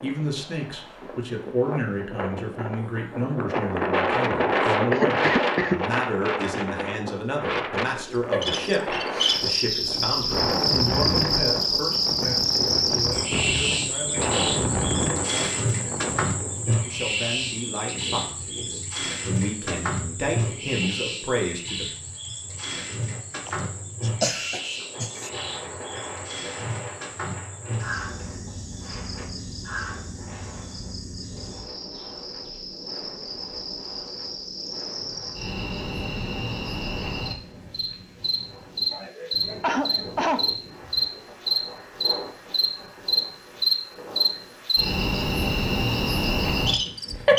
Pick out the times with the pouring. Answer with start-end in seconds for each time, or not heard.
not heard.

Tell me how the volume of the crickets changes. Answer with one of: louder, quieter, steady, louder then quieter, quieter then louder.
quieter then louder.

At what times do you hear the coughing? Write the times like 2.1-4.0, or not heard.
4.9-5.8, 23.4-25.3, 38.9-41.0.